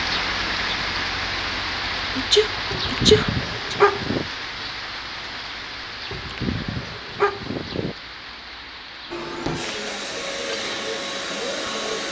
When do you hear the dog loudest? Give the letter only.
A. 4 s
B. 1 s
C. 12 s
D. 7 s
A.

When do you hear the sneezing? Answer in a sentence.
The sneezing can be heard from 2.1 to 3.8 s.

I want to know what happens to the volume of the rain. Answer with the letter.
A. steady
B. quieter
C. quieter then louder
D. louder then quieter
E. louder
B.